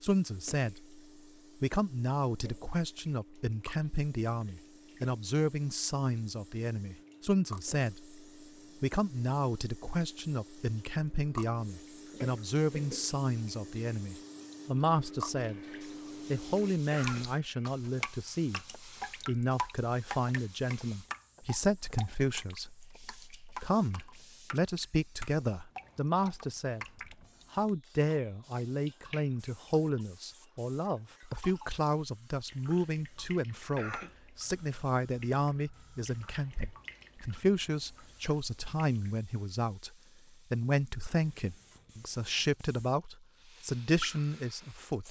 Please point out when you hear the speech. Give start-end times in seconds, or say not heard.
0.0-1.0, 1.6-8.2, 8.8-15.6, 16.3-26.9, 27.5-39.9, 40.5-45.0.